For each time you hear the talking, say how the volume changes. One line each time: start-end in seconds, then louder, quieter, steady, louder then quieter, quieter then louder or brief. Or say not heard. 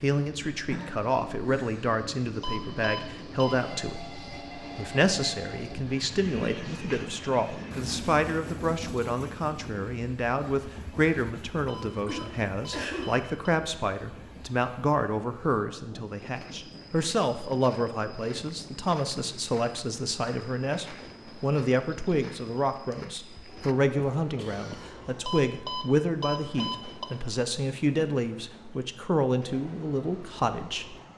0.0-30.9 steady.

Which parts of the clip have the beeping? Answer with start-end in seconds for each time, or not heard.
2.2-3.5, 11.5-13.5, 25.1-27.1.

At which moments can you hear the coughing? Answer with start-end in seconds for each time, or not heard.
0.7-1.8, 11.8-13.1, 24.4-24.9.